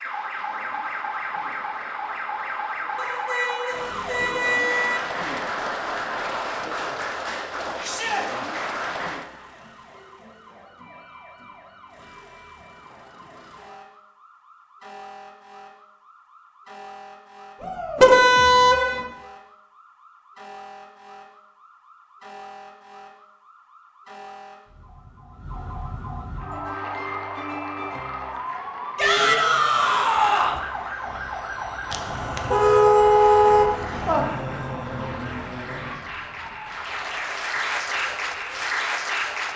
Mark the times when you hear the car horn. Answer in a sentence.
You can hear the car horn from 3.0 to 5.0 s, from 17.9 to 19.1 s and from 31.9 to 34.2 s.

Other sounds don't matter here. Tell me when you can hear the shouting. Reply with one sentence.
You can hear the shouting from 7.8 to 8.2 s, from 17.6 to 18.1 s and from 28.9 to 30.6 s.